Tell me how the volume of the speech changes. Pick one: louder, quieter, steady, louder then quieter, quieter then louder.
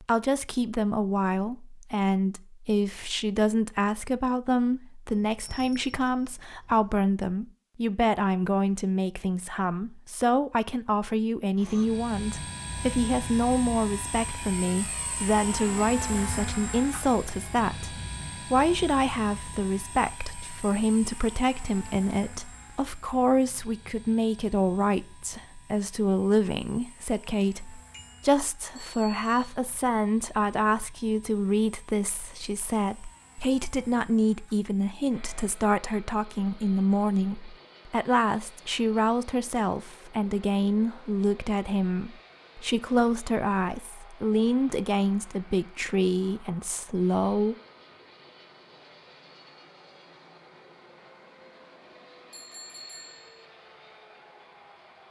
steady.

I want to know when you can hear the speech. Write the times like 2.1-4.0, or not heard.
0.0-47.5.